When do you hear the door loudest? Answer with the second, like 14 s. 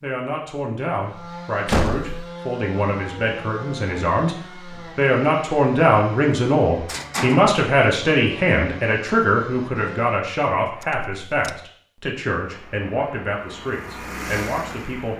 2 s.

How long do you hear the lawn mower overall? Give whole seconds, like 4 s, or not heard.
3 s.